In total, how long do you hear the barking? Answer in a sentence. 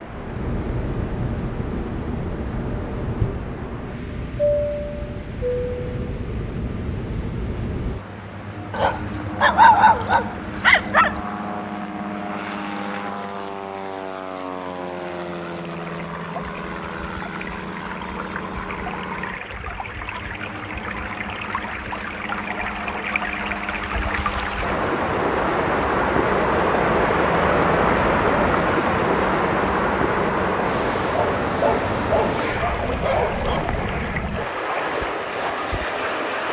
The barking can be heard for 5 seconds in total.